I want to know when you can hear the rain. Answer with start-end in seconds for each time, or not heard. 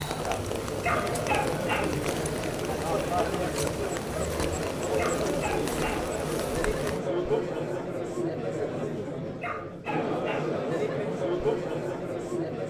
0.0-7.0.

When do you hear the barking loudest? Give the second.
1 s.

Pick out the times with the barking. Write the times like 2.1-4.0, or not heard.
0.7-1.9, 4.8-6.0, 9.2-10.4.